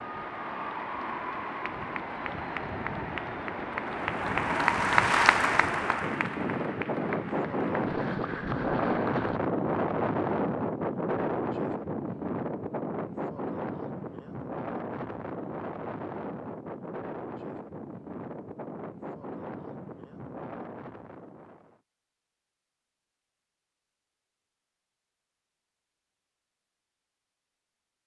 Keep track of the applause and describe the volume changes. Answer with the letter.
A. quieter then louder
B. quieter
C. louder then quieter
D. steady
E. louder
C.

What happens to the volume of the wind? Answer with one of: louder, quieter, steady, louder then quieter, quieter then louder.
louder then quieter.